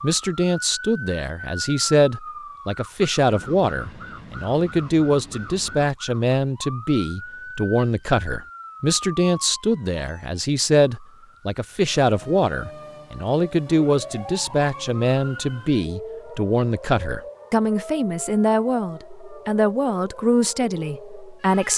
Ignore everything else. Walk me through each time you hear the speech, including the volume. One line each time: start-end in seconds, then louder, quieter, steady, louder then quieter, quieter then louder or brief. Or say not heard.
0.0-21.7 steady.